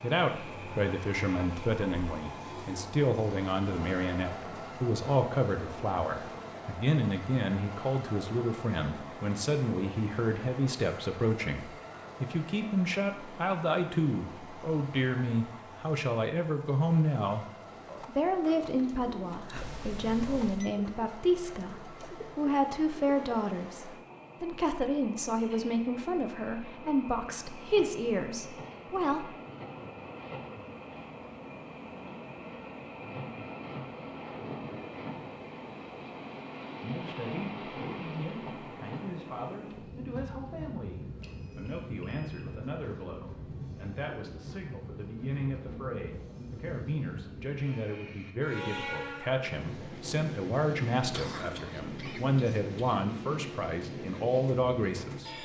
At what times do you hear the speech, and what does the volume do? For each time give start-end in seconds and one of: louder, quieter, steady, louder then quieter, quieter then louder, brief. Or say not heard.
0.0-17.4 steady
18.1-29.3 steady
36.8-55.4 louder.